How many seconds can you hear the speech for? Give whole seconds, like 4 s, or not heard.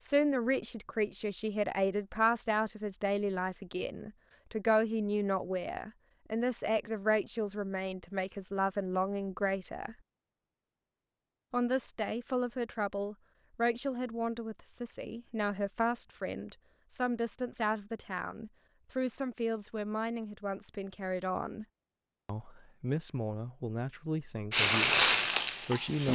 24 s.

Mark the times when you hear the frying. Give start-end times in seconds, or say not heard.
24.5-26.1.